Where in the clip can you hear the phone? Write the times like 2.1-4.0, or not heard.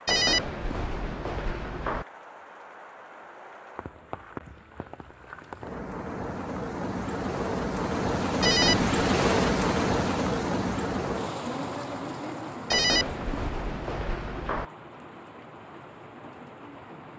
0.1-2.0, 8.4-8.9, 12.7-14.7.